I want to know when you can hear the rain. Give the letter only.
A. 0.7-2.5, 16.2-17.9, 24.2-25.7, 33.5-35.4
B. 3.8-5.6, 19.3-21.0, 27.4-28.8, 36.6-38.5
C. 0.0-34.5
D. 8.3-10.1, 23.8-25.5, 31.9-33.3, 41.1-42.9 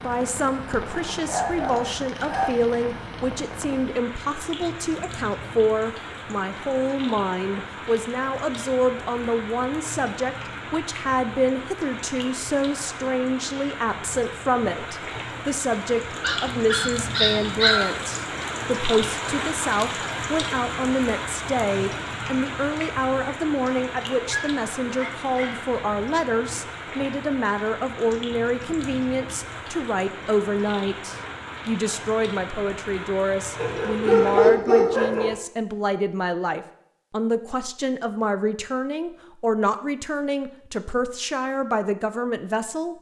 C.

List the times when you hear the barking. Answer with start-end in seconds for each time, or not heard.
0.7-2.5, 16.2-17.9, 24.2-25.7, 33.5-35.4.